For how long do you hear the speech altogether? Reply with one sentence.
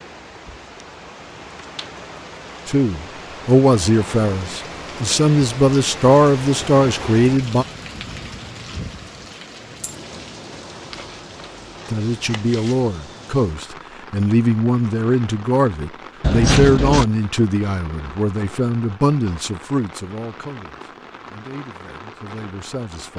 You can hear the speech for 16 seconds altogether.